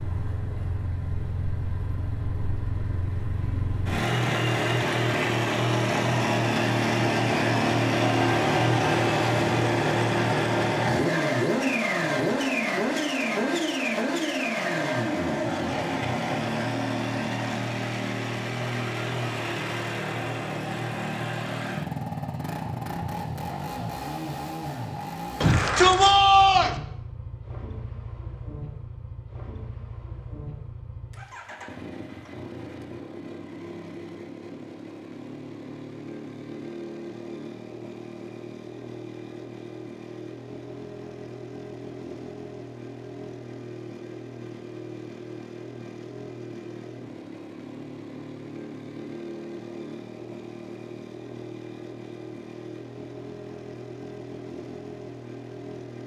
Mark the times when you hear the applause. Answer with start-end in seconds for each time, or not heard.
not heard.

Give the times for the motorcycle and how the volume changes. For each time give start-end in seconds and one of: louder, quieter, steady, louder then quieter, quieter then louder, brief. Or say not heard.
0.0-56.0 quieter.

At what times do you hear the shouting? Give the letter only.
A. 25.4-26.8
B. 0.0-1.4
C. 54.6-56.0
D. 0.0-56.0
A.